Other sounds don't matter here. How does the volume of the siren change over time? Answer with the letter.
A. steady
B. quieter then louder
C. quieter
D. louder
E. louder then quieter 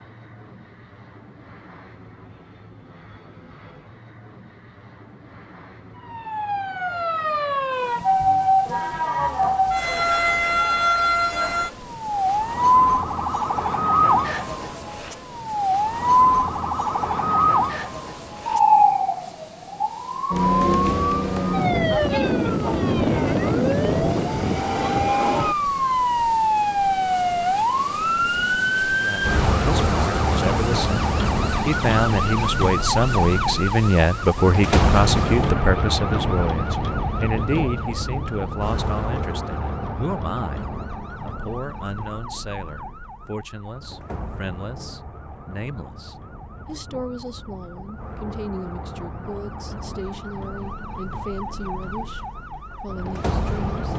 C.